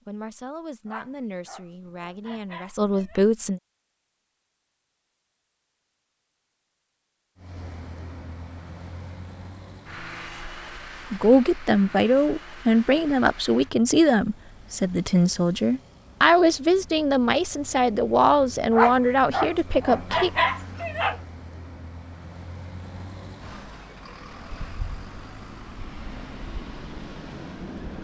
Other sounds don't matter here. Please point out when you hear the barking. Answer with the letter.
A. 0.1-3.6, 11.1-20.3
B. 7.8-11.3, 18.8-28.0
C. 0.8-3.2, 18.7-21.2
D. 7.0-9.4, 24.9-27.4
C.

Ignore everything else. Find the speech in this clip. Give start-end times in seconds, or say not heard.
0.1-3.6, 11.1-20.3.